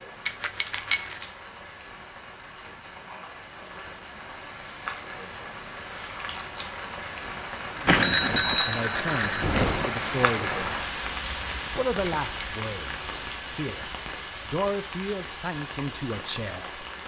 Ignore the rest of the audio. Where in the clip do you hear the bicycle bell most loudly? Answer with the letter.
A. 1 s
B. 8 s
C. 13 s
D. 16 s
B.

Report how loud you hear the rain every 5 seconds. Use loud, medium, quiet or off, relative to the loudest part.
medium, loud, loud, medium.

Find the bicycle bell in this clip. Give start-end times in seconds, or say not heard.
0.2-1.2, 7.8-9.9, 12.1-12.8.